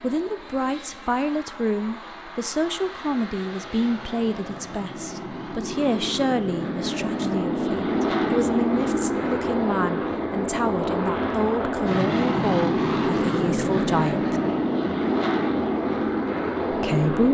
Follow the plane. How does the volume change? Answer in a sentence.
The loudness of the plane goes up.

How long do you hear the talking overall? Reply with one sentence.
You can hear the talking for 15 seconds altogether.